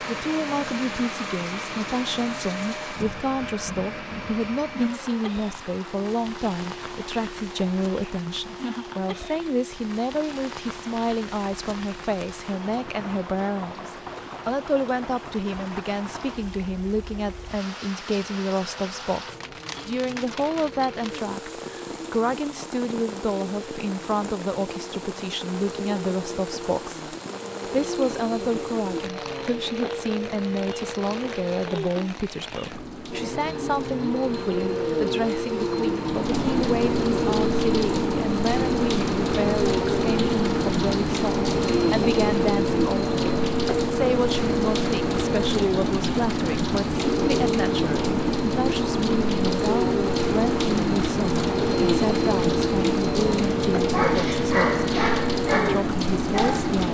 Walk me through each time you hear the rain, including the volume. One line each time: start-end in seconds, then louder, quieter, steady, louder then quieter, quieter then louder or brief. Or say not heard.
0.0-56.8 louder.